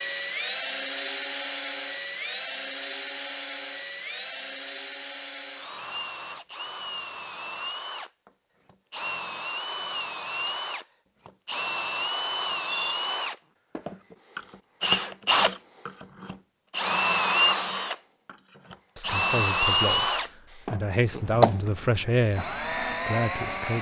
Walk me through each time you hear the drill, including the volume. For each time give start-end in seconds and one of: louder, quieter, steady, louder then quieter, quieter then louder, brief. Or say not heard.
0.0-23.7 louder.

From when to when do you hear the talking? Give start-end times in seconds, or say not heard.
18.9-23.7.